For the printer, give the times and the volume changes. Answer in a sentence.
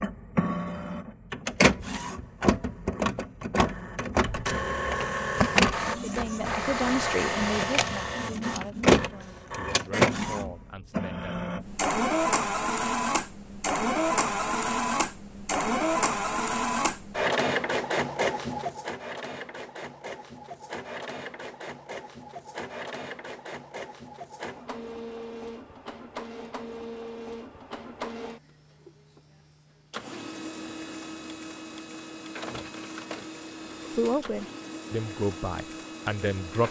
The printer can be heard from 0.0 to 36.6 s, getting quieter.